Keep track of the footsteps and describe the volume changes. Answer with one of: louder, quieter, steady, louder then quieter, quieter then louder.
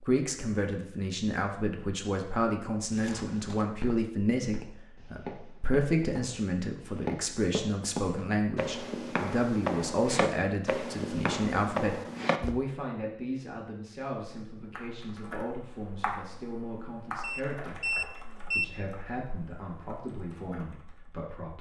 louder.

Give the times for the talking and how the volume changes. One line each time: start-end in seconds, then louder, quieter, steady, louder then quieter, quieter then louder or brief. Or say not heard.
0.0-21.5 quieter.